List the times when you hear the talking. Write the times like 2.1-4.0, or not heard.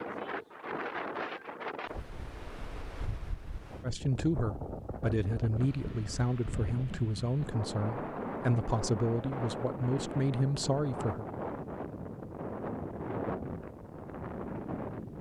3.8-11.2.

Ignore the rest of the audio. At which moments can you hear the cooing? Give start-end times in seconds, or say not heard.
not heard.